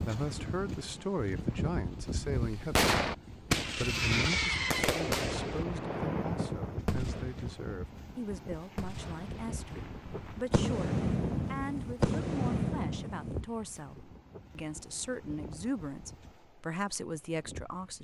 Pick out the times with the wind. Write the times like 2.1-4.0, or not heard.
0.0-17.9.